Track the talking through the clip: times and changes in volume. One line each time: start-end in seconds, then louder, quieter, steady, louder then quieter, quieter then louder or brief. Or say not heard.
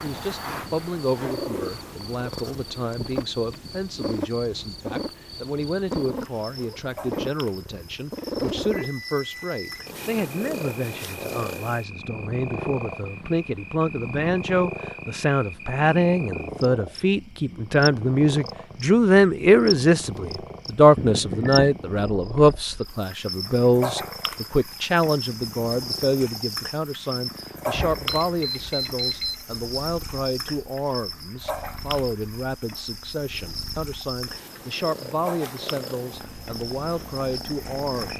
0.0-38.1 louder then quieter.